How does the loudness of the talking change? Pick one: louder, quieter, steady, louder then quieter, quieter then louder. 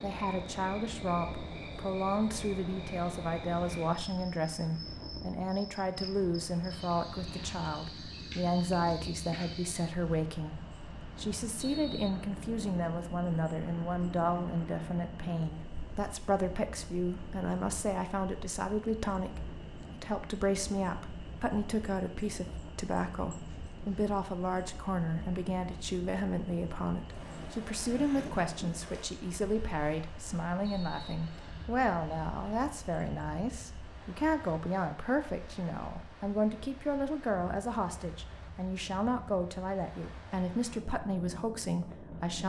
steady.